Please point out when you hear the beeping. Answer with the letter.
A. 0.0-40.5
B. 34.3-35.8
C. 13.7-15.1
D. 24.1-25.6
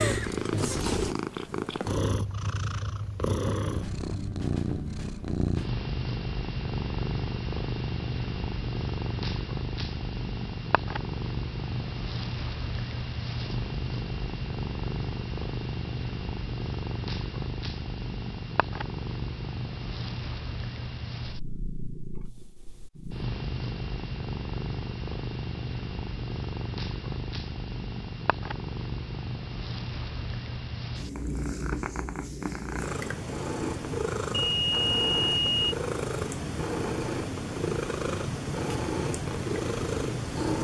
B.